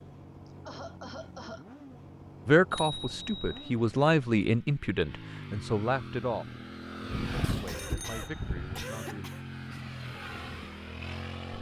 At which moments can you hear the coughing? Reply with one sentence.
You can hear the coughing from 0.5 to 1.6 s and from 7.7 to 9.4 s.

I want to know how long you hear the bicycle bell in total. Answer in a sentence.
The bicycle bell can be heard for 3 seconds in total.